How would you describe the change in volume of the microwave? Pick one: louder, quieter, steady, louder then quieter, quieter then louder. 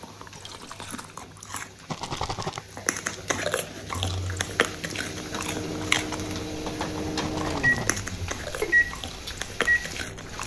louder.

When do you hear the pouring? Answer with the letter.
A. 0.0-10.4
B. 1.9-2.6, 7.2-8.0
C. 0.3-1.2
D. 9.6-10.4
C.